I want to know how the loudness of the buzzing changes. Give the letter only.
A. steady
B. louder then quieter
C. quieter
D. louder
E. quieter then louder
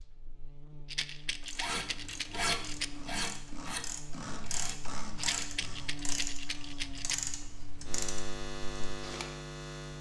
D.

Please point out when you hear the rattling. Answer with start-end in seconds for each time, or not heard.
0.8-2.9, 5.2-7.2.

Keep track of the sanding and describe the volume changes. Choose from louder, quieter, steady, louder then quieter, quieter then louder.
quieter.